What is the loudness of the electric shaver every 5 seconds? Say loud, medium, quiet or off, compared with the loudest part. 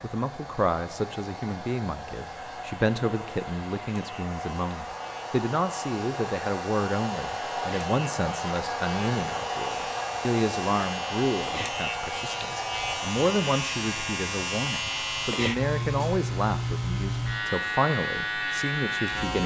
quiet, quiet, loud, loud.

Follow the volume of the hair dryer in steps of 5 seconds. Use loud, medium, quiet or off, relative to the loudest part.
medium, loud, loud, medium.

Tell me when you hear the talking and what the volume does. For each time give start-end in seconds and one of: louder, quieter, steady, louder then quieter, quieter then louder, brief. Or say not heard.
0.0-19.4 steady.